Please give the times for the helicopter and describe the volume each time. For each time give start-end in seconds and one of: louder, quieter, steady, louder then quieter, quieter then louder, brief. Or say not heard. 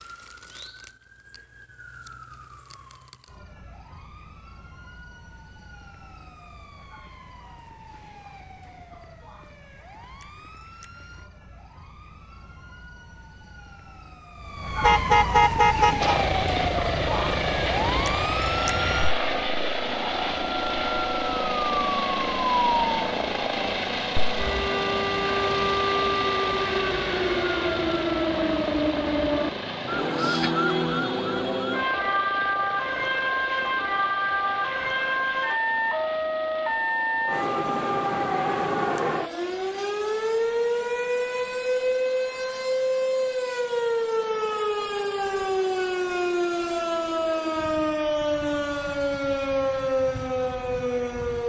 15.9-51.4 quieter.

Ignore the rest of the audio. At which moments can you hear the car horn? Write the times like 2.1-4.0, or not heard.
14.8-16.2.